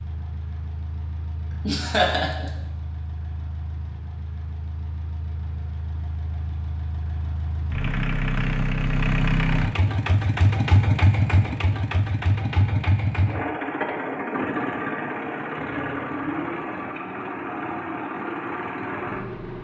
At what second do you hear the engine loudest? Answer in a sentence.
The volume of the engine peaks at 11 seconds.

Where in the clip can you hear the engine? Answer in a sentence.
You can hear the engine from 0.0 to 19.5 s.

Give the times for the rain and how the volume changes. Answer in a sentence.
The rain can't be heard in this clip.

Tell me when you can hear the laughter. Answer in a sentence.
The laughter can be heard from 1.5 to 2.5 s.